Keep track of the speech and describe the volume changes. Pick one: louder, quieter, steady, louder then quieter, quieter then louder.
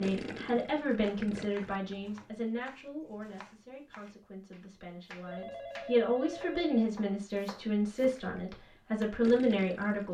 quieter then louder.